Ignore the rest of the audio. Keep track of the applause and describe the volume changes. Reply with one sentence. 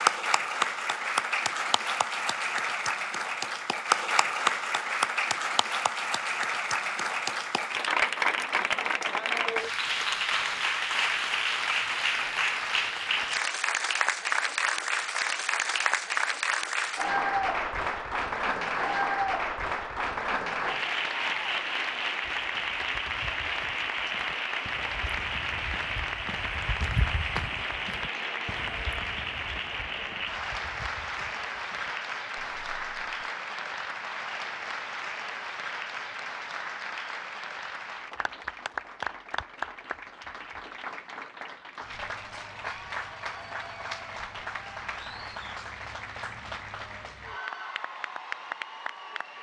The loudness of the applause goes down.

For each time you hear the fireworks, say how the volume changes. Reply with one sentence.
The fireworks can't be heard in this clip.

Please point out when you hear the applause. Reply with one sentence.
You can hear the applause from 0.0 to 49.3 s.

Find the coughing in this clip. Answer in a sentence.
You can't hear the coughing here.